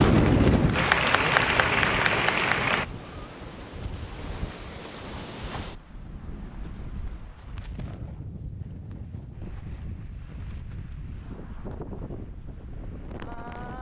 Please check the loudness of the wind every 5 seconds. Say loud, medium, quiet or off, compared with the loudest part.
loud, quiet, quiet.